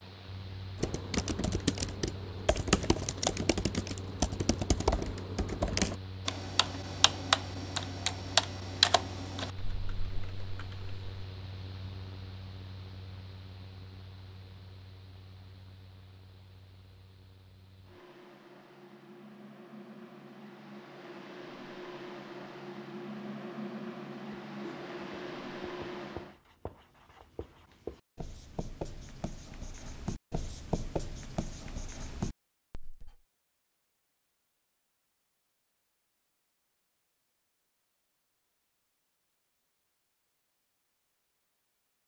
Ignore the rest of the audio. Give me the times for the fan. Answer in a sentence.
The fan can be heard from 0.0 to 26.4 s.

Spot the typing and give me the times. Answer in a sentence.
You can hear the typing from 0.8 to 11.1 s.